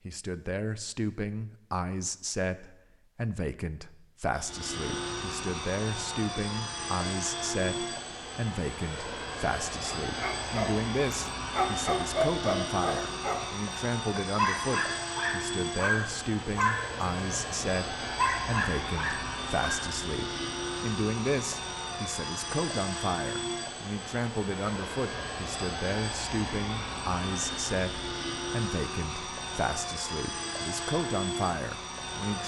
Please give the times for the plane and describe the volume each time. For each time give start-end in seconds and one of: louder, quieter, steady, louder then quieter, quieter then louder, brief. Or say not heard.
4.3-32.4 steady.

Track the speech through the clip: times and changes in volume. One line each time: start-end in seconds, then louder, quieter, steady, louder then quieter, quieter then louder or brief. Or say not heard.
0.1-32.4 steady.